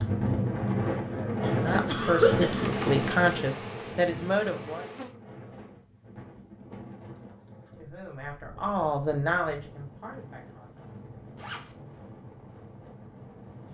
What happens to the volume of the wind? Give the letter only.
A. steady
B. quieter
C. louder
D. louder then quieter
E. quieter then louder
B.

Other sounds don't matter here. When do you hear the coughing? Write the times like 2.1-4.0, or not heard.
1.4-2.7.